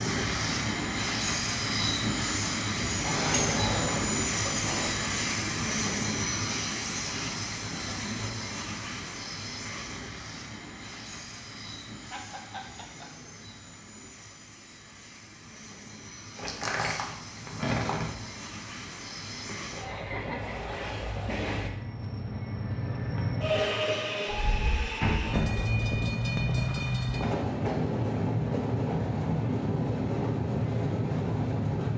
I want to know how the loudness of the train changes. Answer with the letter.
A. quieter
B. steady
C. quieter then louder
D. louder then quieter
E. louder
C.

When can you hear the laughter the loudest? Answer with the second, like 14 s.
20 s.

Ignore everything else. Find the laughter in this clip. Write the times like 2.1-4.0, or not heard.
12.1-13.3, 19.4-20.6.